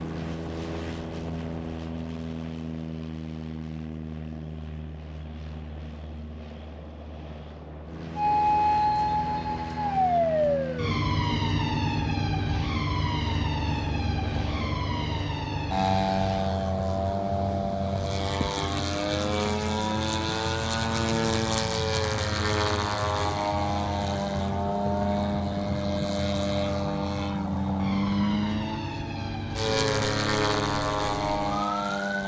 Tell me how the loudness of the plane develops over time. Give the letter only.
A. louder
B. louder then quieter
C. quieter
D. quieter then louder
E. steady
A.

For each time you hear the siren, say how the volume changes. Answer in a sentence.
You can hear the siren from 8.2 to 32.1 s, getting quieter.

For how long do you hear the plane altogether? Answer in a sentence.
You can hear the plane for 32 seconds altogether.